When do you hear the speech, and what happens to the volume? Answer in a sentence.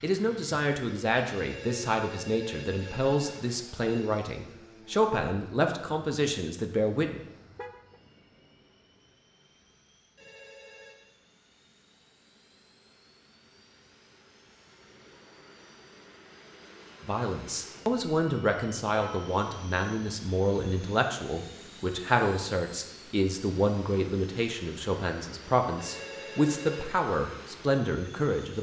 The speech can be heard from 0.0 to 7.2 s, at a steady volume; and from 17.0 to 28.5 s, at a steady volume.